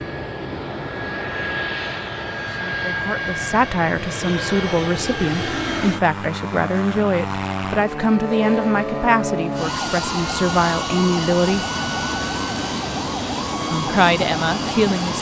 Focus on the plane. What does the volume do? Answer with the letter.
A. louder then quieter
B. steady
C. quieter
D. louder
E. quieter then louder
B.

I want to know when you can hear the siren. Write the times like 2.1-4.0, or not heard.
8.5-15.1.